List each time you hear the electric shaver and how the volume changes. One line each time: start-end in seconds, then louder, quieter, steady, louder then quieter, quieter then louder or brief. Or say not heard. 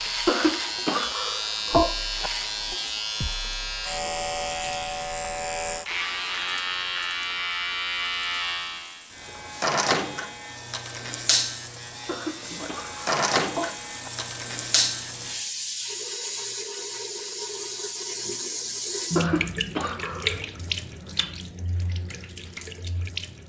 0.0-15.4 steady.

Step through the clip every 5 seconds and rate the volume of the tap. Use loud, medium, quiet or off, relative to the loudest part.
quiet, quiet, medium, loud, loud.